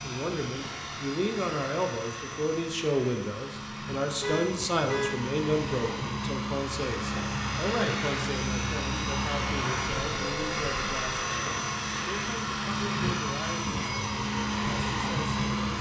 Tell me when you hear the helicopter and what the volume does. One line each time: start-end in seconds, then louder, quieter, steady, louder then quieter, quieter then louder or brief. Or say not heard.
0.0-15.7 louder.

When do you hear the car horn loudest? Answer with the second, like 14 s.
5 s.